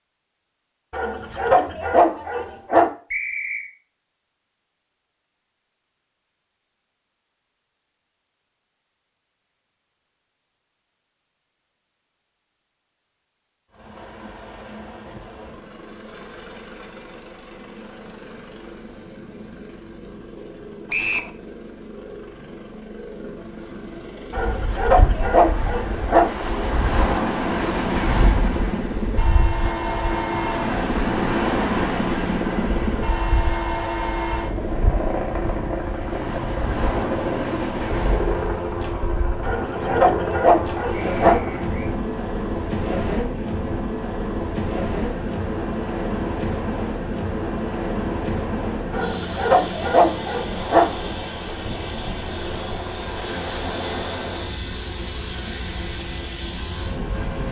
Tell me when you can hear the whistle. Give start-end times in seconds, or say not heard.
3.1-3.7, 20.9-21.3, 40.9-42.0.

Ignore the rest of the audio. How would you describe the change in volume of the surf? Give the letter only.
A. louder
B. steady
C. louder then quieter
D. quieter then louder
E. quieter
E.